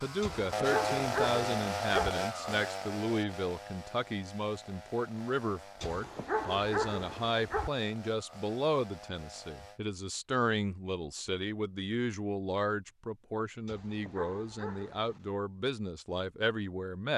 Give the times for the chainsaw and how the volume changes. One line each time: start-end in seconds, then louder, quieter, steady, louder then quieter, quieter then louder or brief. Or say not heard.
0.0-9.8 quieter.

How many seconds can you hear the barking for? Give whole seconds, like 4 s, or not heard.
5 s.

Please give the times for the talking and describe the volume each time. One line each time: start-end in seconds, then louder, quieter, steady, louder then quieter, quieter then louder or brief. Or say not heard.
0.0-17.1 steady.